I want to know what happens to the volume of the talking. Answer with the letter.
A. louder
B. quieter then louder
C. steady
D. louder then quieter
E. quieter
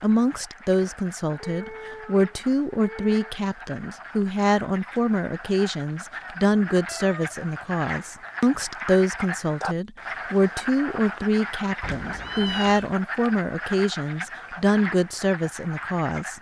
C.